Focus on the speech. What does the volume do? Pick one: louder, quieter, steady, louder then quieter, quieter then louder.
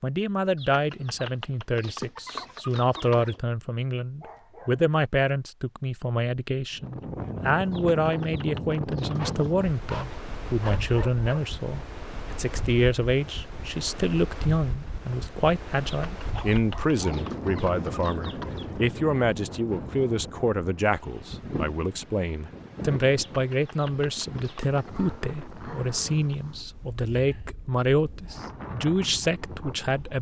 steady.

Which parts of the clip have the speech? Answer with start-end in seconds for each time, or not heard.
0.0-30.1.